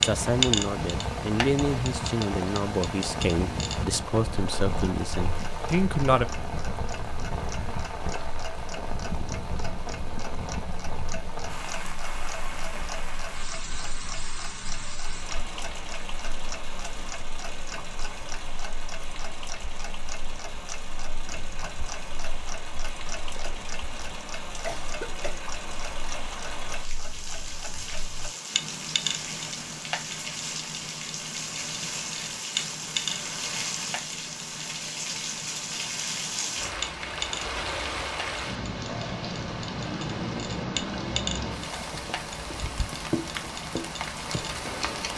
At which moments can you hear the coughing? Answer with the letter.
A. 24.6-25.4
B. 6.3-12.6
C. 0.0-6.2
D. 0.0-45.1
A.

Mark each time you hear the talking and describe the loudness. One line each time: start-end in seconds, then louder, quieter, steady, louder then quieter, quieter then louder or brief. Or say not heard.
0.0-6.2 steady.